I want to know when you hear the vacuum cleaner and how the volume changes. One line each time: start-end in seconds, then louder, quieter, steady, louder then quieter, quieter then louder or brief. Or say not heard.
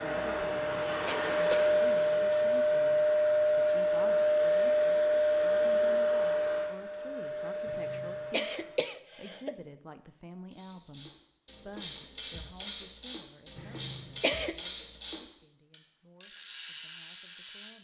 0.0-8.9 quieter.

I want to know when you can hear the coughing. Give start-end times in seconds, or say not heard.
0.5-1.7, 7.7-9.6, 13.6-14.6.